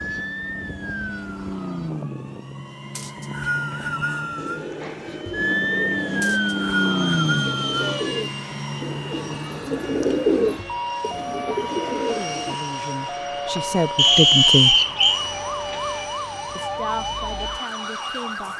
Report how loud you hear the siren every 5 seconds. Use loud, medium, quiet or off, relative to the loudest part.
medium, loud, medium, medium.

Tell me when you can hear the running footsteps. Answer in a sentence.
The running footsteps can't be heard in this clip.